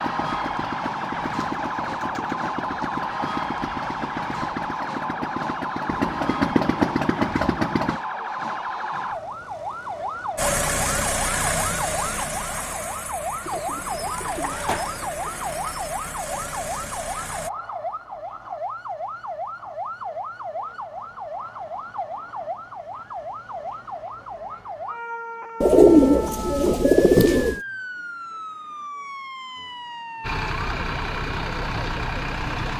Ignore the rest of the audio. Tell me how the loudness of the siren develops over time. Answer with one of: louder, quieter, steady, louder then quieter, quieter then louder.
quieter.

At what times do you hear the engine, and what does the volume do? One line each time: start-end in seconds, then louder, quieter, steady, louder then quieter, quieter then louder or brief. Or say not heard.
0.0-8.0 louder
10.3-17.5 quieter
30.2-32.7 brief.